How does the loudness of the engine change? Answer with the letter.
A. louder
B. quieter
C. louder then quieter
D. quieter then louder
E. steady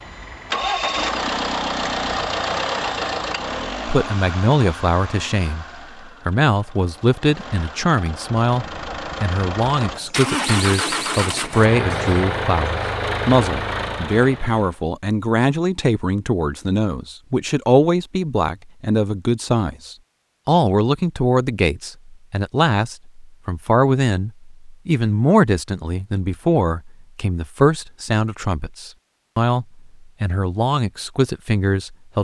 D.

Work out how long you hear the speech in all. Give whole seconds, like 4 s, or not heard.
28 s.